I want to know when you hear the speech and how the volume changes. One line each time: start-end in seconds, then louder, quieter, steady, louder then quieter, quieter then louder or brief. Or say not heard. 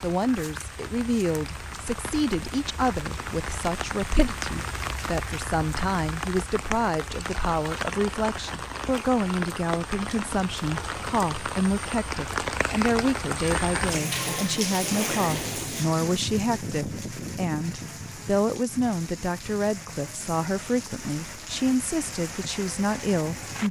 0.0-23.6 steady.